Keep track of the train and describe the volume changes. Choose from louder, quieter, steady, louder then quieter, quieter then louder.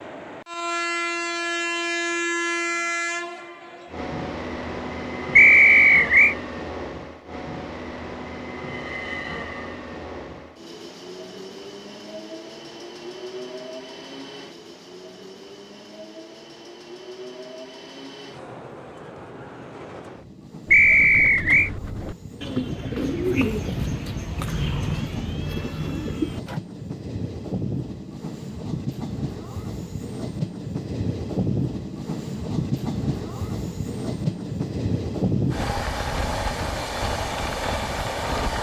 quieter then louder.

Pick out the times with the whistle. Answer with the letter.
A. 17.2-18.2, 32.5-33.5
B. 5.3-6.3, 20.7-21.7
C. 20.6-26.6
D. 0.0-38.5
B.